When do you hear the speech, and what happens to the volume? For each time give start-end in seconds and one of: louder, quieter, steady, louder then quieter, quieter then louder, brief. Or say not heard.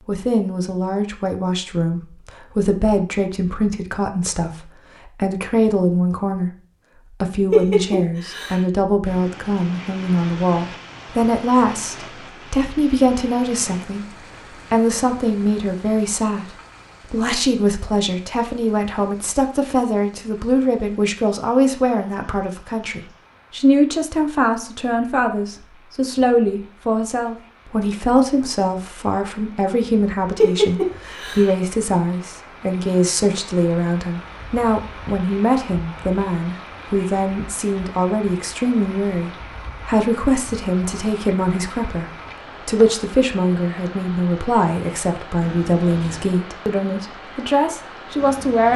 0.1-42.0 steady
42.6-48.7 steady.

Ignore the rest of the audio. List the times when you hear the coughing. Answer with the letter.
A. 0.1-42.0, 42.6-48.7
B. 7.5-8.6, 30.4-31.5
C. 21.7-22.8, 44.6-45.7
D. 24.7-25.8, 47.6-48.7
B.